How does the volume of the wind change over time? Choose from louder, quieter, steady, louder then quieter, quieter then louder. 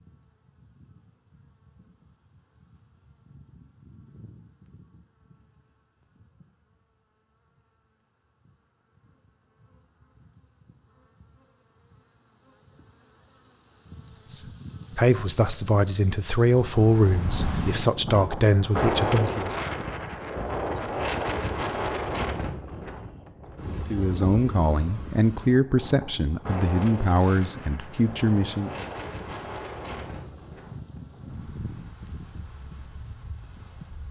quieter.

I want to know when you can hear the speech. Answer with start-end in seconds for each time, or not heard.
14.3-19.5, 23.9-28.9.